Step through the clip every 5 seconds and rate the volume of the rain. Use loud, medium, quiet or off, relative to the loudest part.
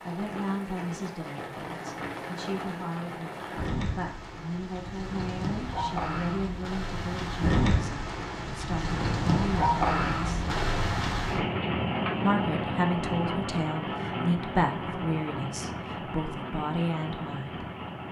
medium, loud, loud, medium.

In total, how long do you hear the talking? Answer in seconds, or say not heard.
16 s.